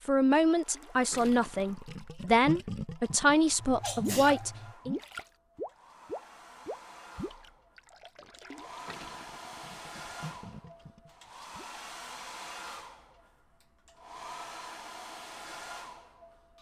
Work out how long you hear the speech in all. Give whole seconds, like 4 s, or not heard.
5 s.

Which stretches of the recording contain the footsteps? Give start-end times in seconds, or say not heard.
not heard.